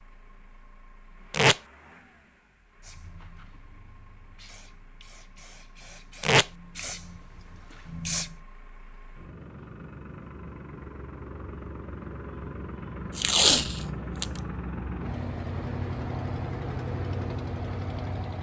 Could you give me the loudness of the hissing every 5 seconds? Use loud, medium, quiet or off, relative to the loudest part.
quiet, loud, off, off.